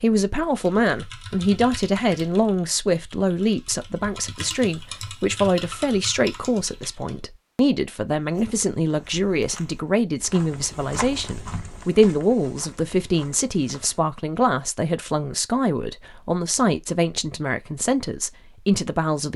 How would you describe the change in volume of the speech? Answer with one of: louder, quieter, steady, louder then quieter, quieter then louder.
steady.